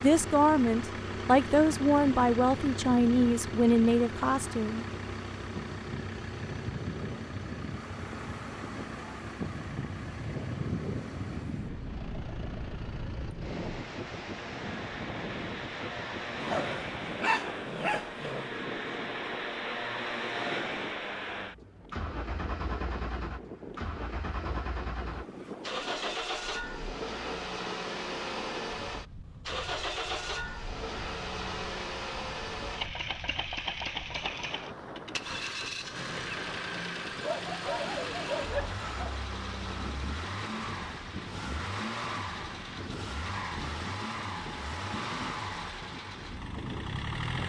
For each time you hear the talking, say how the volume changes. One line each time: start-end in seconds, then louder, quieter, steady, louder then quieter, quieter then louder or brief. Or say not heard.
0.0-4.8 steady.